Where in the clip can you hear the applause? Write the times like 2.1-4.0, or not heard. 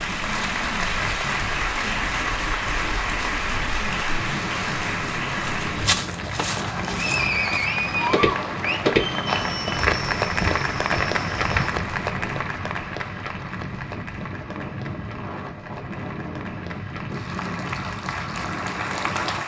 0.0-19.4.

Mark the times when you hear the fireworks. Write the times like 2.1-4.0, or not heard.
not heard.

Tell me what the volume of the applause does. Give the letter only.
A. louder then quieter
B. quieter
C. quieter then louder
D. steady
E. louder
B.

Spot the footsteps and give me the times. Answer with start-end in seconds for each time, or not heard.
5.5-11.8.